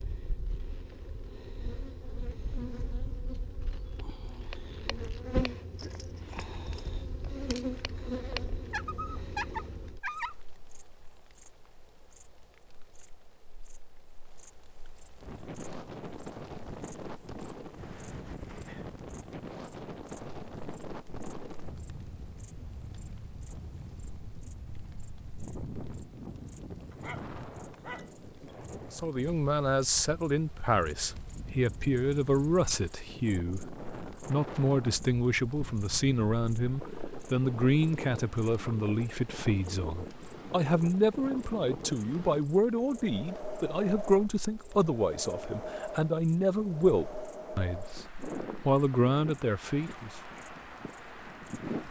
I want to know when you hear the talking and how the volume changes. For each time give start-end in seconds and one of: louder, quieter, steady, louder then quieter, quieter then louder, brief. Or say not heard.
28.9-50.1 steady.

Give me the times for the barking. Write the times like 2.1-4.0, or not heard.
8.7-10.3, 26.9-28.1.